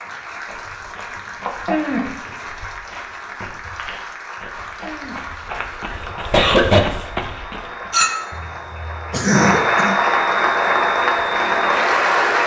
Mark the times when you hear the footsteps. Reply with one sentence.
The footsteps can be heard from 0.3 to 8.0 s.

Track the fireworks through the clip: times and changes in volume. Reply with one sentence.
The fireworks can't be heard in this clip.